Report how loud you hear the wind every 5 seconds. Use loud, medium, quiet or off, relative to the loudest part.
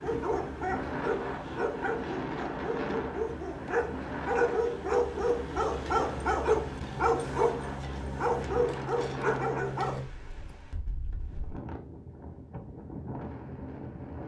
loud, loud, medium.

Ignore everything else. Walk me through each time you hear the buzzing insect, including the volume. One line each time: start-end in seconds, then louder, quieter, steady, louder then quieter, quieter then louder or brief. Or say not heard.
not heard.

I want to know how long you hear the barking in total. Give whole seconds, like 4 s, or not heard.
10 s.